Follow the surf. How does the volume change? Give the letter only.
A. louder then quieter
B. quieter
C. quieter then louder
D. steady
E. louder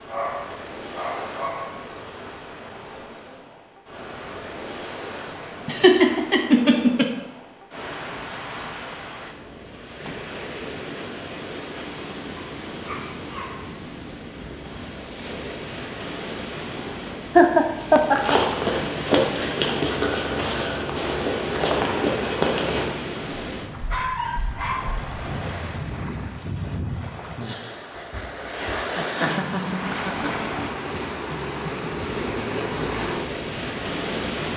E.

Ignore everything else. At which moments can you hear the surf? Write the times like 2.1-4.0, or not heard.
0.0-34.5.